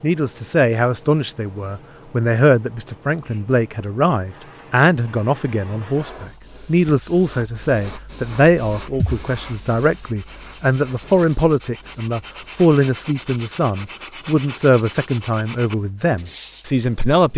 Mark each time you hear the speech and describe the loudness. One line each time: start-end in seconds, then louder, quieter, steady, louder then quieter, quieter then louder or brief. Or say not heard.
0.0-17.3 steady.